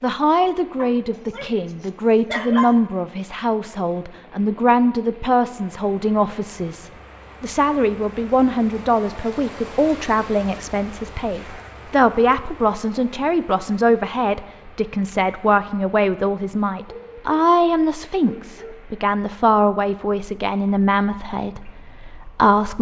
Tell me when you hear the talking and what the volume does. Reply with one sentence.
You can hear the talking from 0.0 to 22.7 s, at a steady volume.